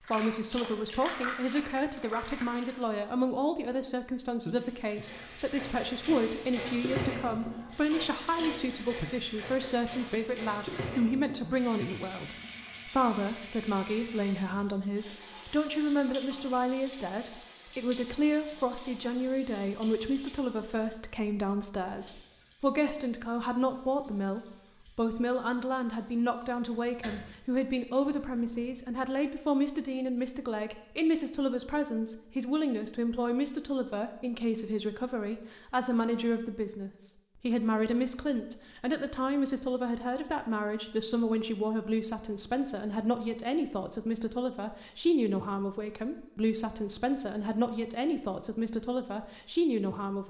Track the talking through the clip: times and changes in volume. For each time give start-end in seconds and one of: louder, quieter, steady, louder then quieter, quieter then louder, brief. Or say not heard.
0.1-50.2 steady.